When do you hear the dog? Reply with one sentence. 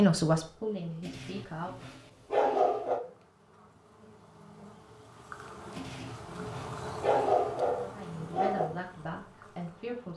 The dog can be heard from 1.1 to 3.0 s and from 5.8 to 8.7 s.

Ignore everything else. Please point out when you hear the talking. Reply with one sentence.
The talking can be heard from 0.0 to 1.9 s and from 7.9 to 10.1 s.